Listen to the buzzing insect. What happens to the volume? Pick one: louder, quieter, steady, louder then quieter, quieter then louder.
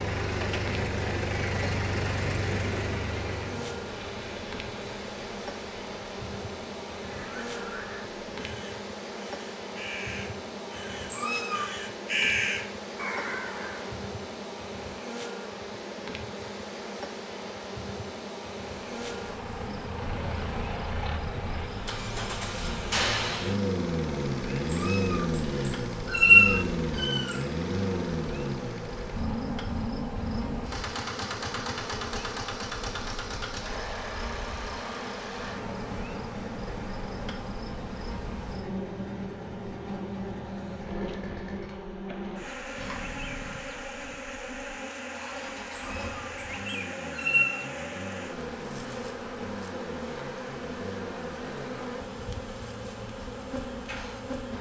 steady.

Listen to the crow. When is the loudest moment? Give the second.
12 s.